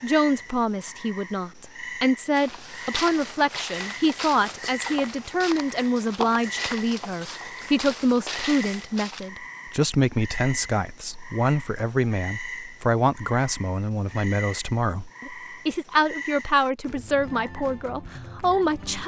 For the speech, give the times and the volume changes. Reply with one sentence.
The speech can be heard from 0.0 to 19.0 s, at a steady volume.